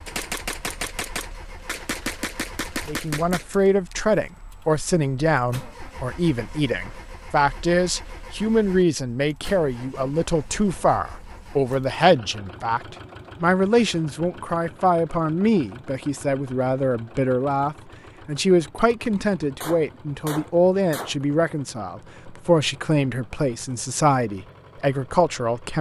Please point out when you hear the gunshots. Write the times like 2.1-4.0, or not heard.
0.1-4.0, 19.6-21.1.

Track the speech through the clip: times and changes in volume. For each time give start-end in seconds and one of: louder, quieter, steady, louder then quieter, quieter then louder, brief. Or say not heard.
2.9-25.7 steady.